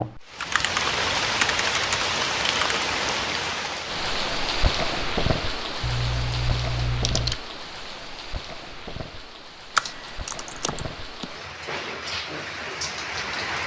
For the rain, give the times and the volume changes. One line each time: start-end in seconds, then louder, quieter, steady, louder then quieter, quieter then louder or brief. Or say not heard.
0.0-13.6 quieter then louder.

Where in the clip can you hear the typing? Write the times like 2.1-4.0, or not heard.
0.4-2.9, 5.8-7.3, 9.8-11.3.